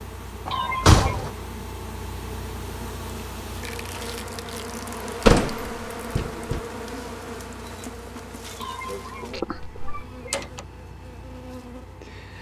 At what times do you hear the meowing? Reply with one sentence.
The meowing can be heard from 0.5 to 1.2 s and from 8.6 to 10.4 s.